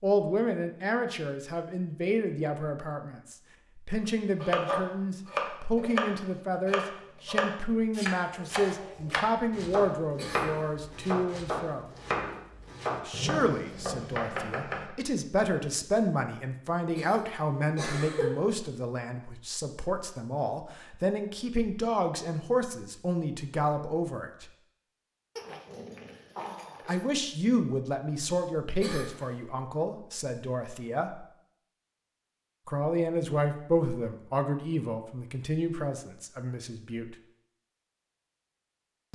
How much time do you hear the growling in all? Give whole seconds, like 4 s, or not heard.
2 s.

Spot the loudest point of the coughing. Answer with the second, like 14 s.
18 s.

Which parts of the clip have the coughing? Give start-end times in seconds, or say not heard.
10.2-10.8, 16.9-18.4, 28.8-29.4.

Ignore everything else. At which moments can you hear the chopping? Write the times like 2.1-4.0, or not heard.
4.4-14.9.